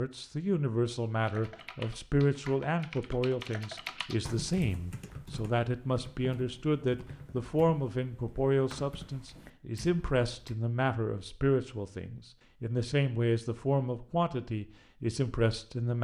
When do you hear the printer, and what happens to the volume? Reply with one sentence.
The printer can't be heard in this clip.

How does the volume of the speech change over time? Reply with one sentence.
The volume of the speech stays about the same.